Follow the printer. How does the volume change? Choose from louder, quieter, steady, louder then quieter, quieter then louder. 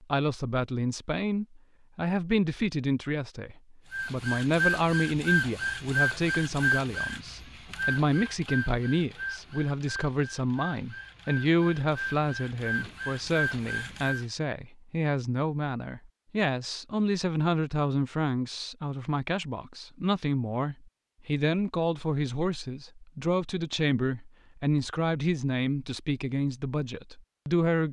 quieter then louder.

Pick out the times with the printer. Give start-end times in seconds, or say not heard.
3.9-14.2.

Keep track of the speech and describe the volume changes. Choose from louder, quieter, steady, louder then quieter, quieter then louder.
steady.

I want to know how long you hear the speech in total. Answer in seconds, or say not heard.
28 s.